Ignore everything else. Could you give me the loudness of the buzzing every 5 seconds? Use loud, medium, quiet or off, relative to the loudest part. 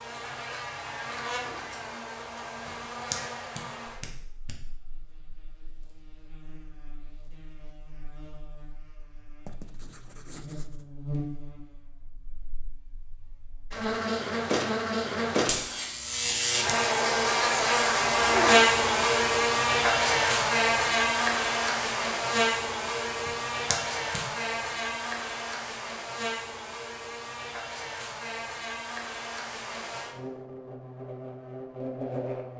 quiet, quiet, medium, loud, loud, quiet, quiet.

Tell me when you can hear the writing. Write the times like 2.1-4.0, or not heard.
9.4-10.8.